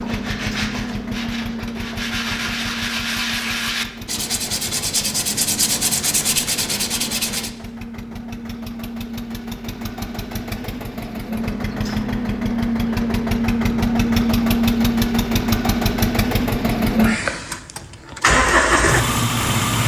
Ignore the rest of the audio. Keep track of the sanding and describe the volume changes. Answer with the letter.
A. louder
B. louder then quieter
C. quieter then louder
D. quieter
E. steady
A.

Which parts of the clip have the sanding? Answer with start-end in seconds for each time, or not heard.
0.0-7.5.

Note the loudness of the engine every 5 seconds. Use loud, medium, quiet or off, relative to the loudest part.
medium, quiet, loud, loud.